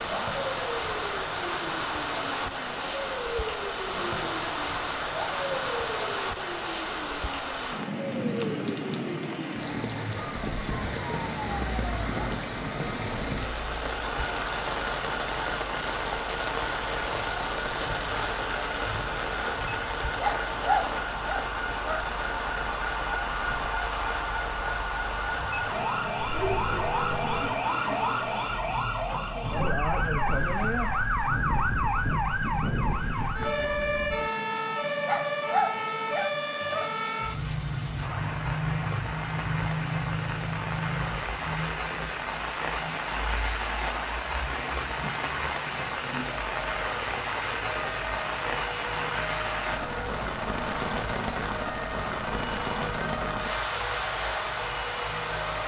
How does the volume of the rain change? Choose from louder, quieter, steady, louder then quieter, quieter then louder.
quieter then louder.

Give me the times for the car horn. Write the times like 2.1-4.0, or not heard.
26.1-27.6.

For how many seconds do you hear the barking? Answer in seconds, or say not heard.
4 s.